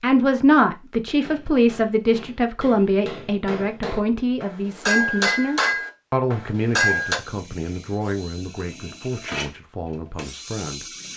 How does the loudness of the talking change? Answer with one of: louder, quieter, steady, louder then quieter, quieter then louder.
quieter.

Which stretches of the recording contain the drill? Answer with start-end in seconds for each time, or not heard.
6.8-11.1.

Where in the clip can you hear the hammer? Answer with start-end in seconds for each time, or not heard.
1.2-7.2.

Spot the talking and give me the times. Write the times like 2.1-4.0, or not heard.
0.0-11.1.